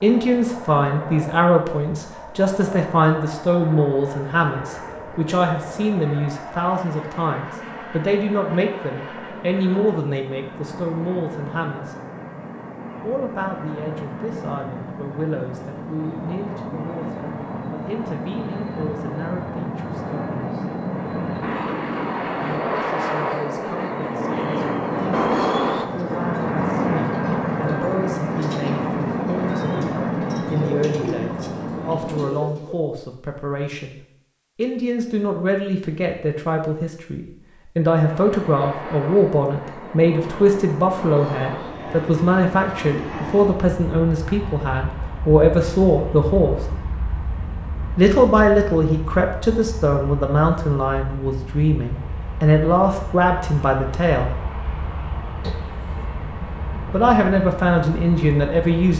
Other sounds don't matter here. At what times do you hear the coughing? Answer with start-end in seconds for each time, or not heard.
55.4-56.1.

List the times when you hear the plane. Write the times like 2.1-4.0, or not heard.
0.0-32.4, 38.0-58.9.